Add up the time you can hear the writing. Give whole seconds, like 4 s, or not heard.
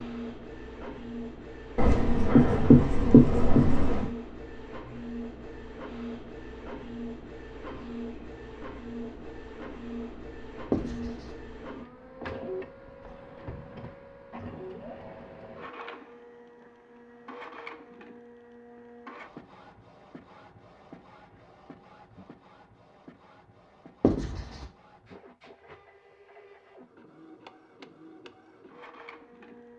4 s.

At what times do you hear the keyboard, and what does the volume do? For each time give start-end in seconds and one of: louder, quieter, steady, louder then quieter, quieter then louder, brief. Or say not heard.
not heard.